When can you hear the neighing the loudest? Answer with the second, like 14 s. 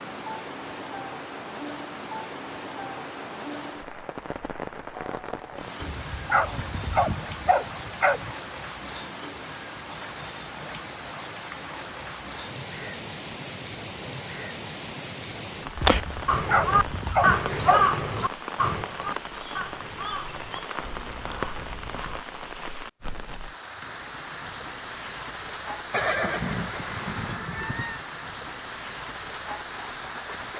26 s.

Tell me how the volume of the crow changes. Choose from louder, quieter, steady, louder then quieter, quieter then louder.
quieter.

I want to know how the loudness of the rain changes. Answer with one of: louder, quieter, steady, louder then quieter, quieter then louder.
steady.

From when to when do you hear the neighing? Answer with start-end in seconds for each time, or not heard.
25.9-28.0.